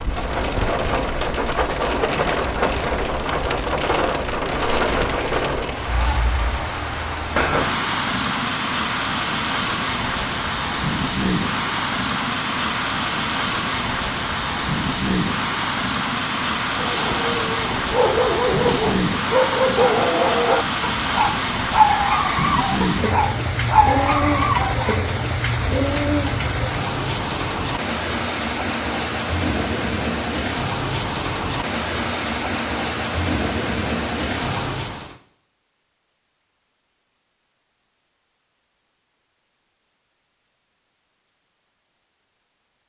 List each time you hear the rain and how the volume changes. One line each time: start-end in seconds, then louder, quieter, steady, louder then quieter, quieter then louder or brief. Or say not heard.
0.0-35.1 steady.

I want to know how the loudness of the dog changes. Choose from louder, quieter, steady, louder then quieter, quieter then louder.
steady.